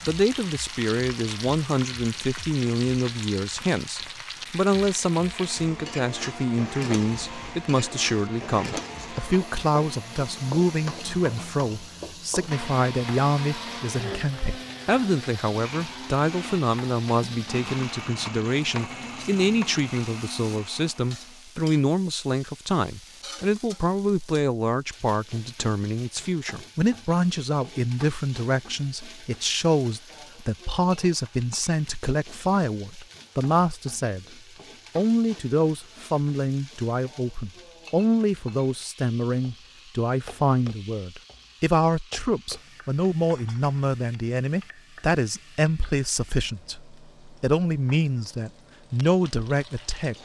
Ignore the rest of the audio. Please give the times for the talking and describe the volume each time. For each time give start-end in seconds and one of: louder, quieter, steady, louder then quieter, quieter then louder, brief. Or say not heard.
0.1-34.2 steady
35.0-50.2 steady.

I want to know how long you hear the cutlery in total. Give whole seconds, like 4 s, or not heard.
not heard.